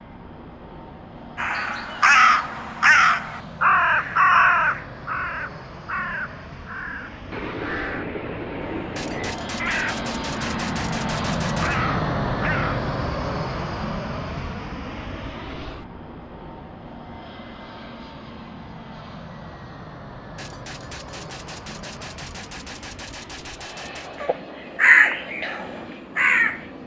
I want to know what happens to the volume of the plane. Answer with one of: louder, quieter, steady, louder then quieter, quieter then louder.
louder then quieter.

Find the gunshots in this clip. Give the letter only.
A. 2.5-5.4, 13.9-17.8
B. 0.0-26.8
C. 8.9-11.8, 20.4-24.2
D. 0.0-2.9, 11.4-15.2
C.